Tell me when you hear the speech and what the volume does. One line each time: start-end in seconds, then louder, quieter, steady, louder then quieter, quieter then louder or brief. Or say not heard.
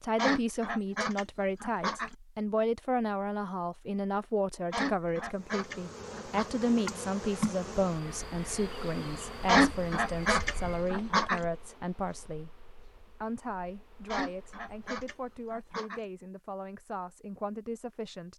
0.0-18.3 quieter.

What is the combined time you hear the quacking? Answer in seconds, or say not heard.
8 s.